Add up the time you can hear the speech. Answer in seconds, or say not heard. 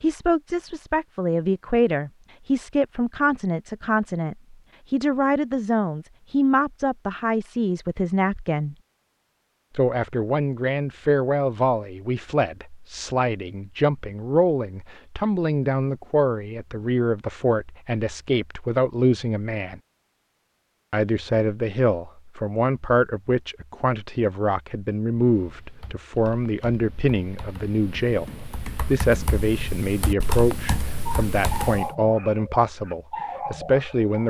32 s.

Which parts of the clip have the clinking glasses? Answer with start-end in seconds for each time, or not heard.
not heard.